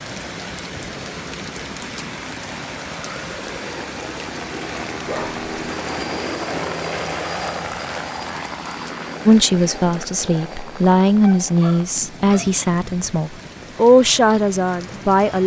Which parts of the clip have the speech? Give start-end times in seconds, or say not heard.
9.2-15.4.